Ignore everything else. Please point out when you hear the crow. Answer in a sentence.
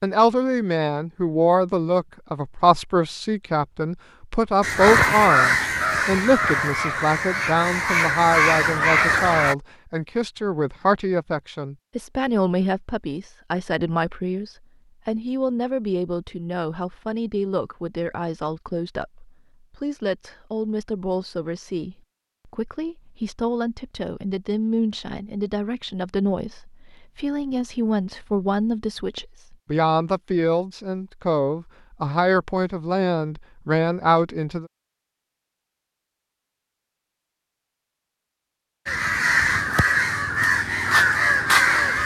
You can hear the crow from 4.6 to 9.6 s and from 38.9 to 42.0 s.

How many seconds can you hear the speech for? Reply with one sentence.
The speech can be heard for 35 seconds in total.